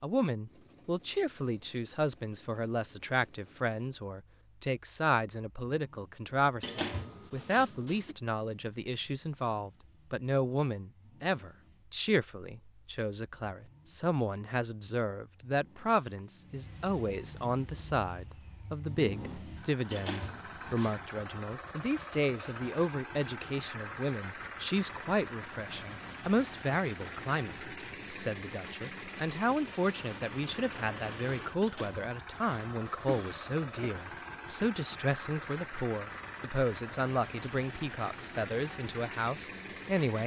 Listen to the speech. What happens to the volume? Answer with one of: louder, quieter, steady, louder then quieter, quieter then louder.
steady.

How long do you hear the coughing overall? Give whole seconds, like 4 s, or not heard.
5 s.